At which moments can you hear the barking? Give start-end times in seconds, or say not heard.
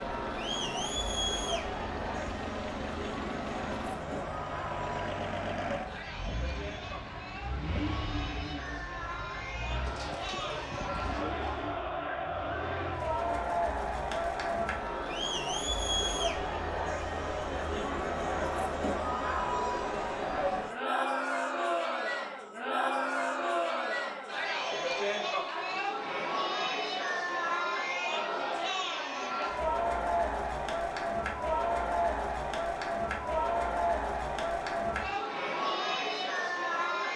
9.8-11.8.